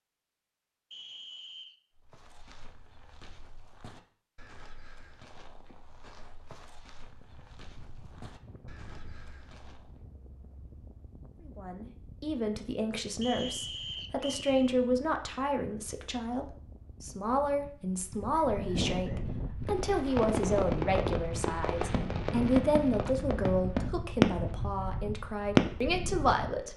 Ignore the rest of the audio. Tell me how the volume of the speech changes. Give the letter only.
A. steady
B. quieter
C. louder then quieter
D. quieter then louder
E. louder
A.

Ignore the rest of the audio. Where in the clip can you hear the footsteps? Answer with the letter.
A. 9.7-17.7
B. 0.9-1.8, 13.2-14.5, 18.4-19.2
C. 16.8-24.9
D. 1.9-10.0
D.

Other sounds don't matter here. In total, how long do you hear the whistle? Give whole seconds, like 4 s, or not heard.
3 s.